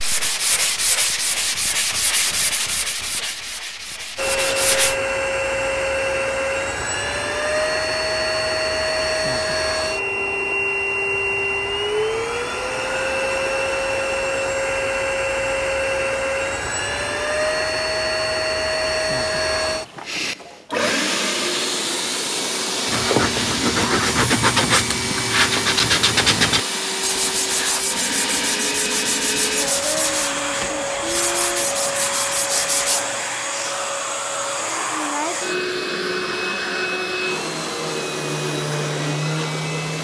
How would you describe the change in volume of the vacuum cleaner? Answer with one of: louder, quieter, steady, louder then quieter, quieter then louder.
steady.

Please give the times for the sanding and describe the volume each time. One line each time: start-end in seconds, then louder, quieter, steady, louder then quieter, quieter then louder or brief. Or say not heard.
0.0-5.0 quieter
22.9-33.0 quieter.